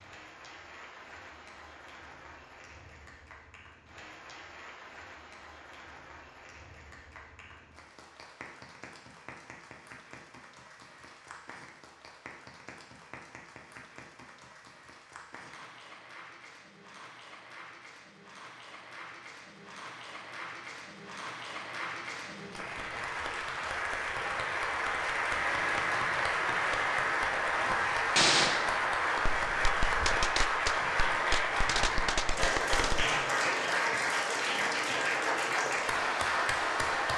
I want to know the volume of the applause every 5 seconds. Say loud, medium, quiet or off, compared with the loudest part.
quiet, quiet, quiet, quiet, medium, loud, loud, loud.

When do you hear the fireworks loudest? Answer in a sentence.
The volume of the fireworks peaks at 28 seconds.